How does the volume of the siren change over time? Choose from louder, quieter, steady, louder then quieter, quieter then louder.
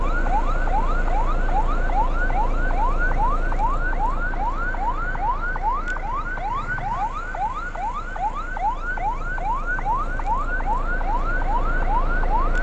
steady.